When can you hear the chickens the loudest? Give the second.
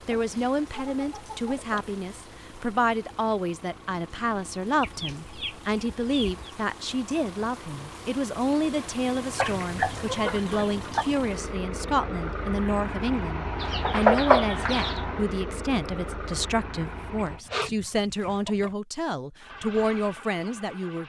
14 s.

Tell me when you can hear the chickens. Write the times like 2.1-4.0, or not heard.
0.1-1.8, 4.8-6.3, 9.3-11.1, 13.6-15.0, 17.1-18.7.